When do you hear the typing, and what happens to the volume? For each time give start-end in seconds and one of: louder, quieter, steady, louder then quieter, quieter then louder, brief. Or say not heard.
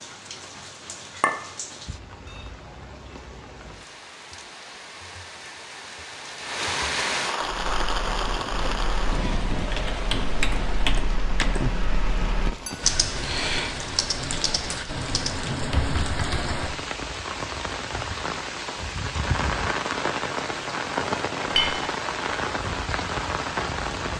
7.4-16.6 louder then quieter.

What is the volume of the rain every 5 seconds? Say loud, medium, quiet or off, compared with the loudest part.
quiet, loud, medium, loud, loud.